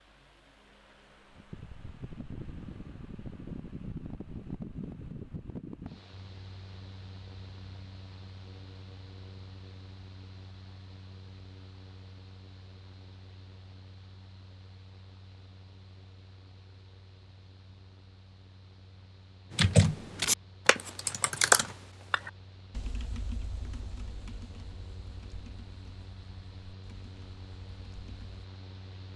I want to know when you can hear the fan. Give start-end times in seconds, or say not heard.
0.0-29.1.